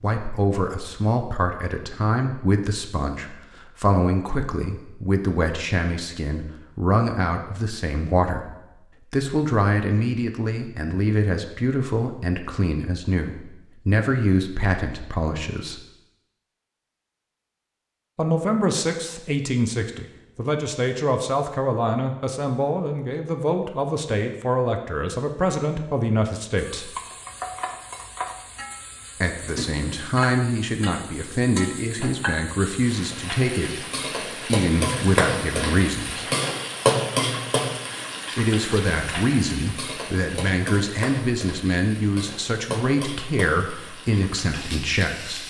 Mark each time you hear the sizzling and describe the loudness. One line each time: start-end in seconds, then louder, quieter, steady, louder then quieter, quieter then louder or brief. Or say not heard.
26.6-45.4 louder then quieter.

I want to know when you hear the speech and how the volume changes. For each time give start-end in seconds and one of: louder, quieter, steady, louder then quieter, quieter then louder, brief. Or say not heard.
0.0-15.8 steady
18.1-26.9 steady
29.2-36.3 steady
38.4-45.4 steady.